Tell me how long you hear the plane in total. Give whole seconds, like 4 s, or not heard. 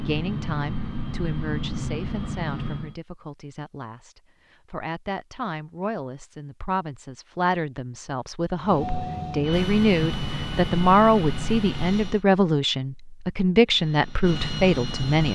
8 s.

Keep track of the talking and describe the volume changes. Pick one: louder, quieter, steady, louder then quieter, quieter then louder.
louder.